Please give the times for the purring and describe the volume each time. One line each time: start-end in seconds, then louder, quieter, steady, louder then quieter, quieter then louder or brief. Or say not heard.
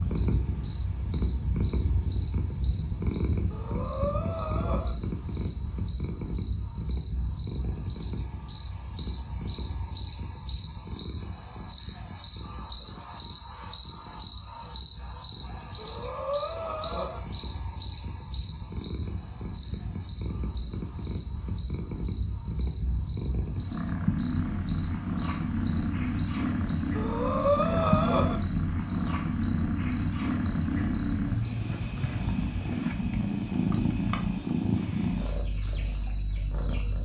0.0-37.0 quieter then louder.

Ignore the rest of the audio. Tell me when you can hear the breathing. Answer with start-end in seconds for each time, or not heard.
3.5-5.0, 15.8-17.2, 26.9-28.4.